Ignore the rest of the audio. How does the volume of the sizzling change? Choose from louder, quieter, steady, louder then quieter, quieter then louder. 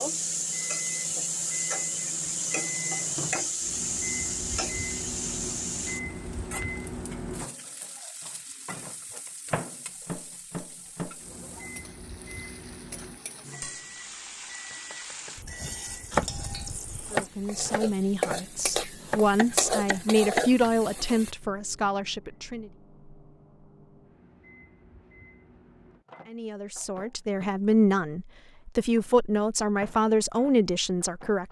quieter then louder.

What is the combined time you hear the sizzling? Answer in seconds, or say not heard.
21 s.